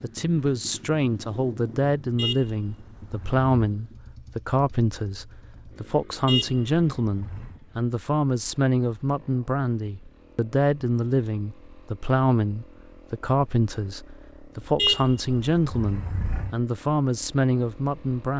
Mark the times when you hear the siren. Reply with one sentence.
You can't hear the siren here.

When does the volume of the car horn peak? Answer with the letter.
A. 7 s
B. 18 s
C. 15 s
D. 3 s
C.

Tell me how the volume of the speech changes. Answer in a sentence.
The loudness of the speech stays about the same.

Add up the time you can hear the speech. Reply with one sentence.
You can hear the speech for 18 seconds altogether.